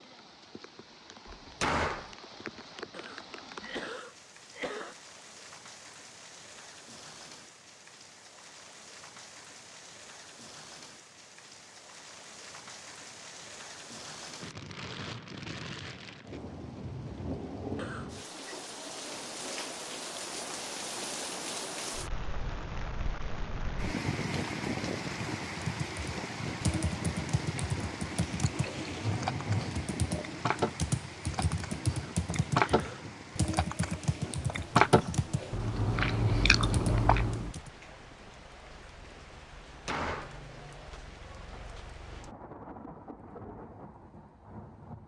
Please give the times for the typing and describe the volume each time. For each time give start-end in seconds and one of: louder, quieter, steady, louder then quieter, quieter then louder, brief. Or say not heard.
25.4-37.7 steady.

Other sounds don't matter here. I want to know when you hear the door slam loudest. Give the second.
2 s.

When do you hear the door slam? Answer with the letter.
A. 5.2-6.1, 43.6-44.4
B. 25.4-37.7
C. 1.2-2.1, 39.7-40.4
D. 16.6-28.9
C.